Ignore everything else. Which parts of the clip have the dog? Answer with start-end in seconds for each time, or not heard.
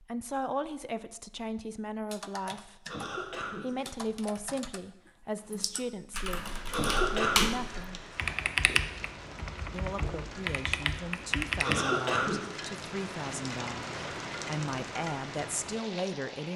not heard.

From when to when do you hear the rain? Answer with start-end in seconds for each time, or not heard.
6.3-16.5.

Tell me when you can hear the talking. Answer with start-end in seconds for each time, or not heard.
0.0-8.0, 9.7-16.5.